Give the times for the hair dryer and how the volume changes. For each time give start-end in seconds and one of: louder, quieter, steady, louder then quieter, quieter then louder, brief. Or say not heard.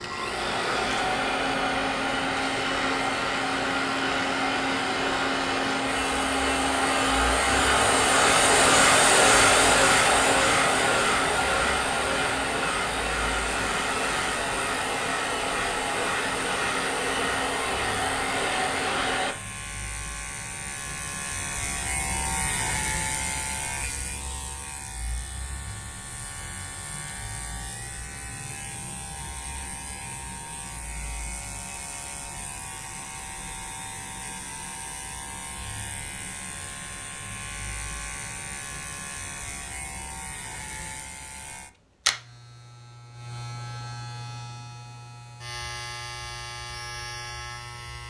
0.0-19.4 louder then quieter.